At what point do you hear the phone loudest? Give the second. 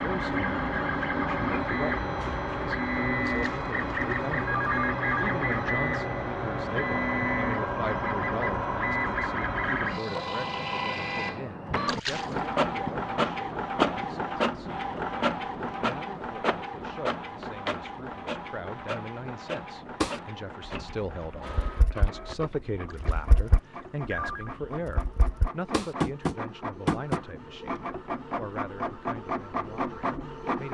5 s.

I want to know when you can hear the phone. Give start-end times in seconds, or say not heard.
3.2-5.2, 11.8-12.2, 22.9-24.5.